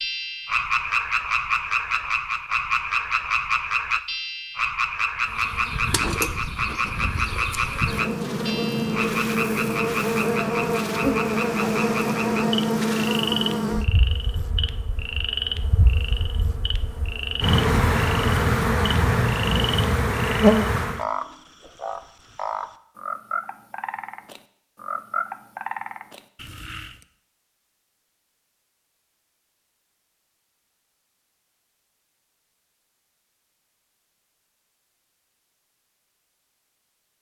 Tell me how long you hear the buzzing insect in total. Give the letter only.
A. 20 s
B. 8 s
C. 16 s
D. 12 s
C.